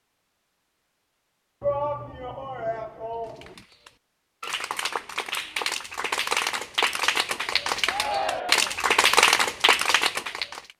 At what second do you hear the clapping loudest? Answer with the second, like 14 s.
9 s.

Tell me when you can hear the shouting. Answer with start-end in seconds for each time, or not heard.
1.6-3.5, 7.8-8.8.